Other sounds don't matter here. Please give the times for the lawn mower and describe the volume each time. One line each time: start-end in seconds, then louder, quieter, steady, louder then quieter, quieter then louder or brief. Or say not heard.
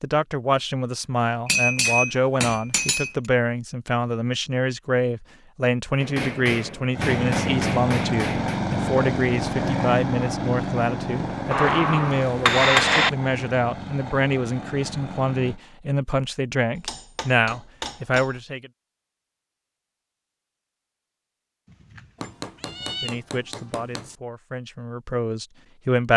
6.9-15.6 quieter.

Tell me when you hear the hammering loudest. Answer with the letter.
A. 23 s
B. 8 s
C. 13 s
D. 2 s
C.